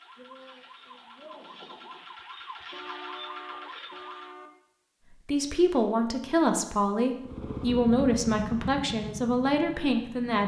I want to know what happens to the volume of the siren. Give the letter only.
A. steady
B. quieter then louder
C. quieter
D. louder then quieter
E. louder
E.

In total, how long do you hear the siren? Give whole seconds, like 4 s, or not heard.
4 s.